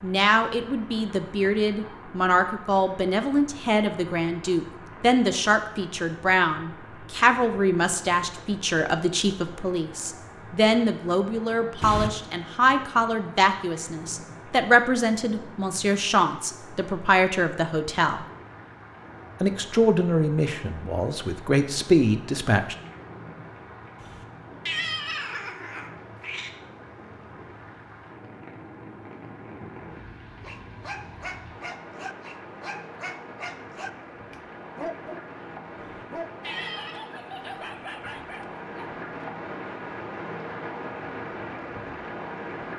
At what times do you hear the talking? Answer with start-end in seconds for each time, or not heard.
0.0-18.2, 19.4-22.8.